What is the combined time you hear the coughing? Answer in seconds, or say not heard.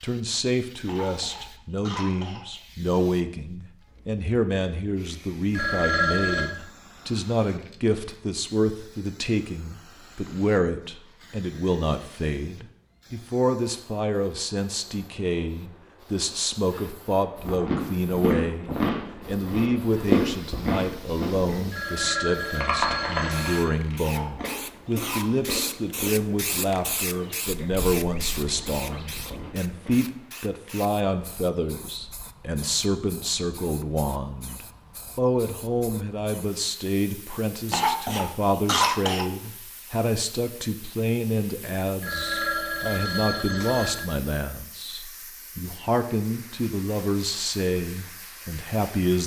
5 s.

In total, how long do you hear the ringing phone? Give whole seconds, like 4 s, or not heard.
5 s.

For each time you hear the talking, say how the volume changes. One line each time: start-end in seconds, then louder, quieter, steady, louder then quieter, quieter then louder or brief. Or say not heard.
0.0-49.2 steady.